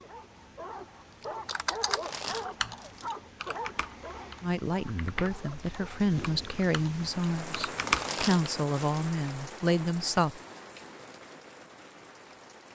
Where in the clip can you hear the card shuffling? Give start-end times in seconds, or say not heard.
1.8-3.1, 7.8-9.1.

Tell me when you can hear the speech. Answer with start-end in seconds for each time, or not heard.
4.4-10.4.